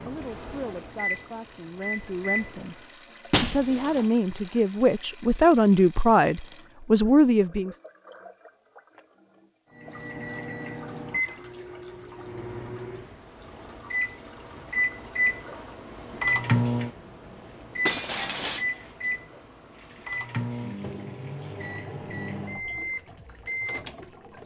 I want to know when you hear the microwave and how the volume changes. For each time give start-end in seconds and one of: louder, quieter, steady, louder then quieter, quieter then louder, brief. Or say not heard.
0.0-2.6 brief
9.8-24.4 louder then quieter.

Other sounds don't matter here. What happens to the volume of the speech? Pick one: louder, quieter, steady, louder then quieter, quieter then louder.
louder.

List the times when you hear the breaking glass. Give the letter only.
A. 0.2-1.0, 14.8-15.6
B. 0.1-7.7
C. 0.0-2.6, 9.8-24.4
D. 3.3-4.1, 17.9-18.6
D.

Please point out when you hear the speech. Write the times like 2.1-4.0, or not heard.
0.1-7.7.